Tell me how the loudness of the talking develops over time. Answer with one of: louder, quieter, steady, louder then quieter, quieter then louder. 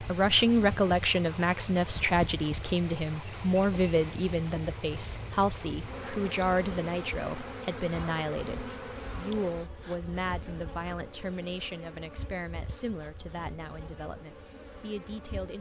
quieter.